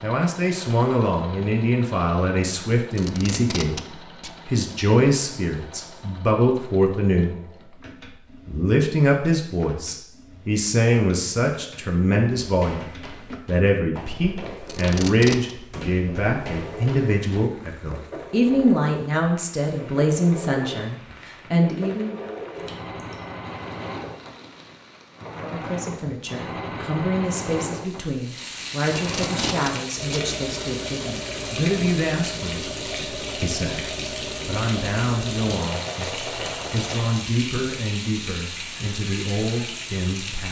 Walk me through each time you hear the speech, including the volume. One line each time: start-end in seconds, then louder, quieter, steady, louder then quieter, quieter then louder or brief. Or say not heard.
0.0-7.8 steady
8.4-22.1 steady
25.4-40.4 steady.